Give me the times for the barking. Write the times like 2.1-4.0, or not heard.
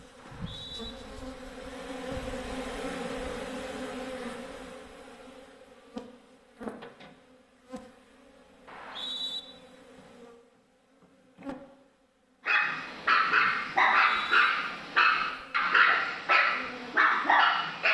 12.4-17.8.